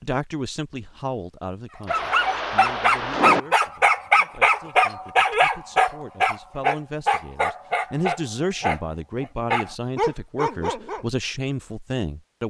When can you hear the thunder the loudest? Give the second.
3 s.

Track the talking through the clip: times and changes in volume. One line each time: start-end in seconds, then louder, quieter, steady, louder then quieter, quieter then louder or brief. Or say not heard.
0.0-12.4 quieter then louder.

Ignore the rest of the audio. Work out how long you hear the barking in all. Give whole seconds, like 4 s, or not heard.
9 s.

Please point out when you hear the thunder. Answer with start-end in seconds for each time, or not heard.
1.9-3.4.